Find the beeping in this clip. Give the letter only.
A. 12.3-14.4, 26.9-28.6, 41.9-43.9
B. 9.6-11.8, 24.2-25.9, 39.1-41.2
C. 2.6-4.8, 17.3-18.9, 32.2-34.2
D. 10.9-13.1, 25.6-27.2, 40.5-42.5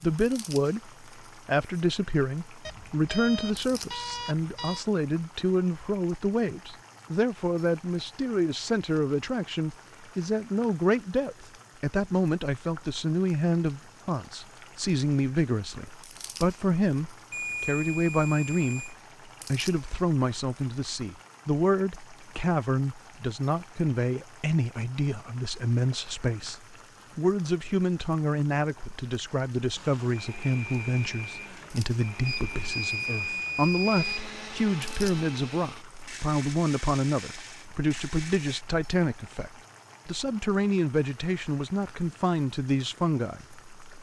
C.